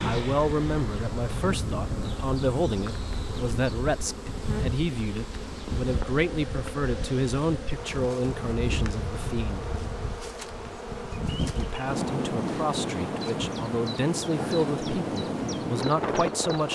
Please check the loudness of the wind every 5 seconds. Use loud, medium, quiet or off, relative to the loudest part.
medium, medium, loud, loud.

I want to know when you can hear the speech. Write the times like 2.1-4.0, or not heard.
0.0-9.7, 11.6-16.7.